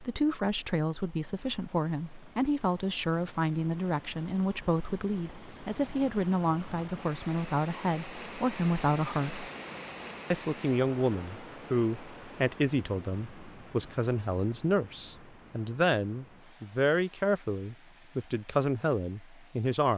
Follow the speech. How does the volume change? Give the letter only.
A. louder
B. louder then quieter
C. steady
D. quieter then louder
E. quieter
C.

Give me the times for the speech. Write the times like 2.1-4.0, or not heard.
0.0-9.4, 10.3-19.9.